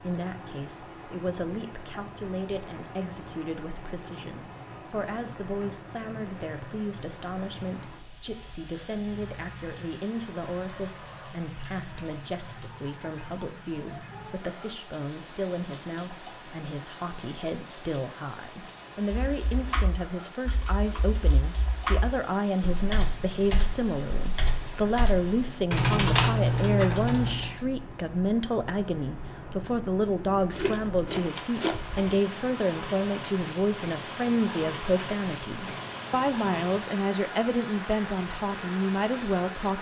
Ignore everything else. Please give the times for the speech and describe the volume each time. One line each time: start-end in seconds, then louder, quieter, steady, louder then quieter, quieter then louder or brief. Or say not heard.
0.0-39.7 louder.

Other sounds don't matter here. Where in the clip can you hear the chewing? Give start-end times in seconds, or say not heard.
30.6-32.2.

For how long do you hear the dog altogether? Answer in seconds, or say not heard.
not heard.